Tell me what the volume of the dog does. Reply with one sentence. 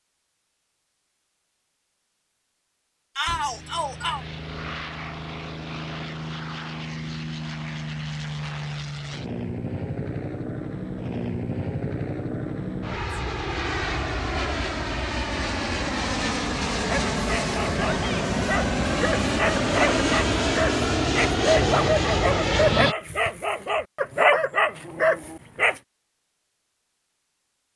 The loudness of the dog goes up.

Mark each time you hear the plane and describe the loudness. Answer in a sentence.
The plane can be heard from 3.2 to 22.9 s, getting louder.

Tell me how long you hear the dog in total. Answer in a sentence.
The dog can be heard for 9 seconds in total.